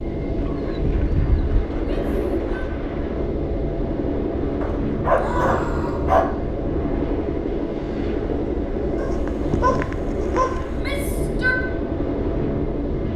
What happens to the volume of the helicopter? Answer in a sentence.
The volume of the helicopter stays about the same.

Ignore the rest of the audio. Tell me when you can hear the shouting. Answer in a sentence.
You can hear the shouting from 1.9 to 2.6 s, from 5.2 to 6.1 s and from 10.7 to 11.6 s.